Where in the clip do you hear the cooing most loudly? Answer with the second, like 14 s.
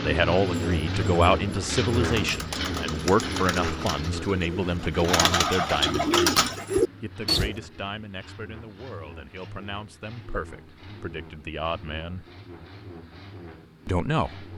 6 s.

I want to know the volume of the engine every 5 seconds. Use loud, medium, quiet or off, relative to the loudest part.
loud, quiet, quiet.